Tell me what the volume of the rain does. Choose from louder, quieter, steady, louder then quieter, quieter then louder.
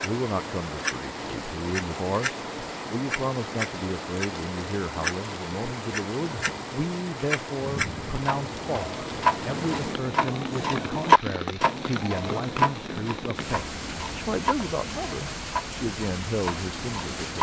steady.